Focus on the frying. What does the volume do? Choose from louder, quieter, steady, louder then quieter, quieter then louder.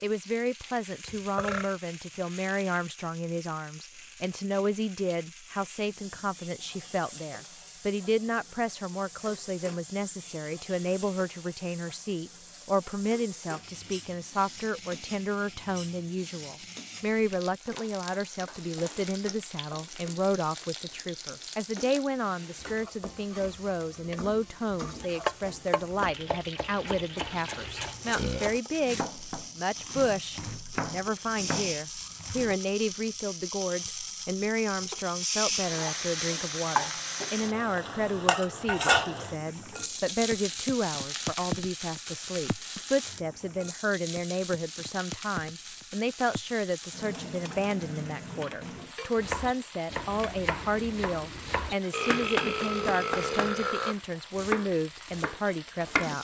louder then quieter.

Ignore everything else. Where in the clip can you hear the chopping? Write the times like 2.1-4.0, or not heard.
25.0-32.6, 49.1-56.1.